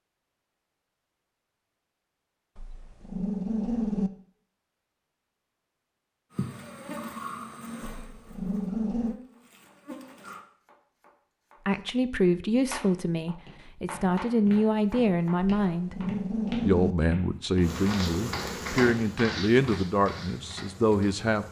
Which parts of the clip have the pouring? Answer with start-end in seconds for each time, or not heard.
not heard.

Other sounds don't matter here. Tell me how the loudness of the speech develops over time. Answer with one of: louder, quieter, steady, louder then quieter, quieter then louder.
steady.